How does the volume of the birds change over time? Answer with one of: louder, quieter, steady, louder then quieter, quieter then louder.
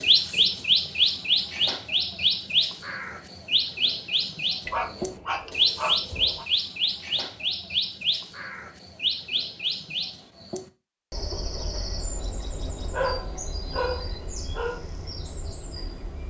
quieter.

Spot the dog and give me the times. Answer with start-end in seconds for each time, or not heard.
4.7-6.5, 12.9-14.8.